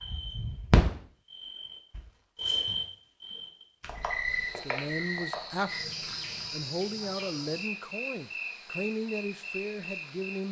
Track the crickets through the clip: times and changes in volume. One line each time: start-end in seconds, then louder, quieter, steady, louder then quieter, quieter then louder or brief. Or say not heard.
0.0-10.2 quieter.